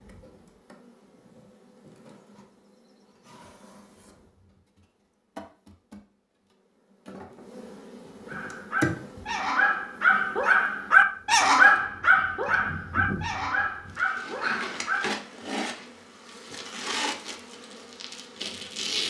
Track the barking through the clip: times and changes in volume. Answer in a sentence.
The barking can be heard from 8.2 to 15.2 s, getting louder then quieter.